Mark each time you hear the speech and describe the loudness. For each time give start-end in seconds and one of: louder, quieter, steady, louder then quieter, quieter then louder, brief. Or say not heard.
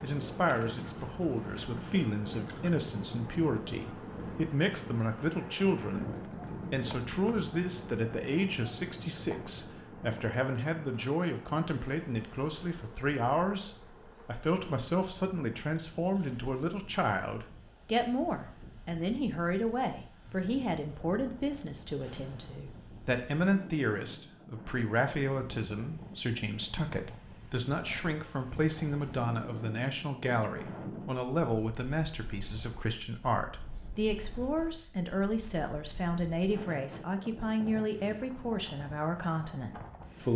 0.0-40.3 steady.